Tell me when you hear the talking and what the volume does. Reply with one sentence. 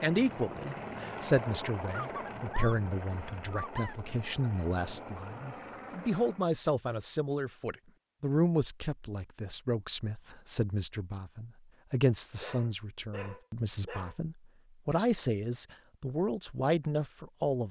You can hear the talking from 0.0 to 17.6 s, at a steady volume.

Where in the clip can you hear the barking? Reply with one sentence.
The barking can be heard from 1.9 to 4.0 s and from 12.4 to 14.2 s.